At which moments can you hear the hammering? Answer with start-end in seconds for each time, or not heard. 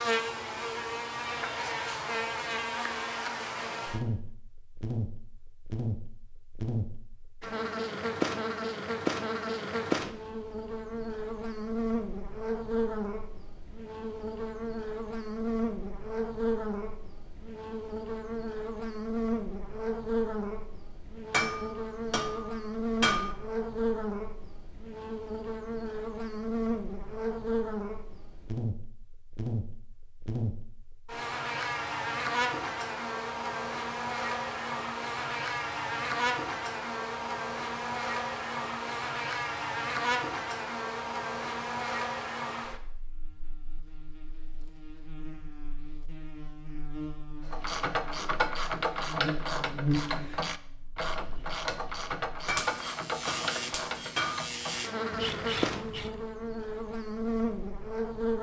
21.3-23.4, 52.5-54.5.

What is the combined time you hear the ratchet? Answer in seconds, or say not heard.
9 s.